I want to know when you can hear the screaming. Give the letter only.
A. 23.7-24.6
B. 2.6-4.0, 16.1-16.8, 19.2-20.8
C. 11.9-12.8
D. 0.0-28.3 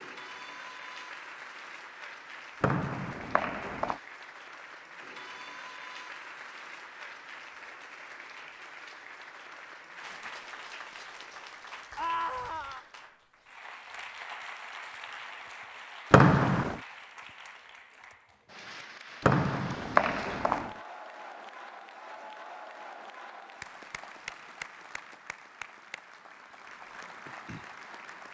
C.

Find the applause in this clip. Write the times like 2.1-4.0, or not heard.
0.0-28.3.